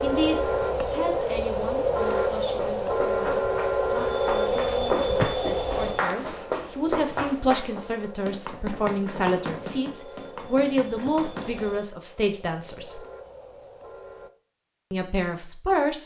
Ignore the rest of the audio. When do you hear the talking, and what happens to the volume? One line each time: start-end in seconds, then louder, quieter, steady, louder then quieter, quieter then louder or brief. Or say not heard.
0.0-13.1 louder
14.9-16.0 brief.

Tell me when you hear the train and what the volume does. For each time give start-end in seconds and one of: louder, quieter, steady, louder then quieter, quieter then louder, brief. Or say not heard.
0.0-14.3 quieter.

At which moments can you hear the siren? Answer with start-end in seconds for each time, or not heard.
not heard.